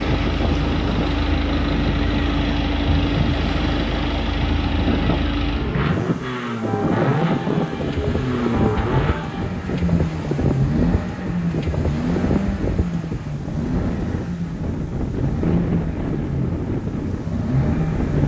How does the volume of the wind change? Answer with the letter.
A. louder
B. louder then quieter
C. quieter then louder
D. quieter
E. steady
E.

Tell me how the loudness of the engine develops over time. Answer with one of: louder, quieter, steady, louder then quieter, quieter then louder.
steady.